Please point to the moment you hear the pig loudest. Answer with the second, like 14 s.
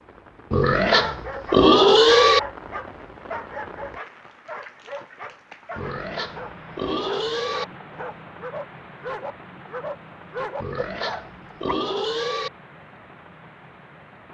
2 s.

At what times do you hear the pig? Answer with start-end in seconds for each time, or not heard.
0.5-2.4, 5.8-7.7, 10.6-12.5.